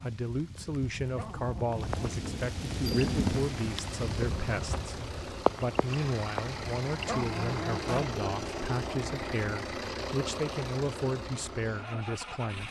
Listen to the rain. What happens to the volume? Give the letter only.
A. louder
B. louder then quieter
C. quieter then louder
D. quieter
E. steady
B.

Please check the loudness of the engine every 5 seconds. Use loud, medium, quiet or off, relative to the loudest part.
medium, loud, loud.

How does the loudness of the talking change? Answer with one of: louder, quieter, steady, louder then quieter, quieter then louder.
steady.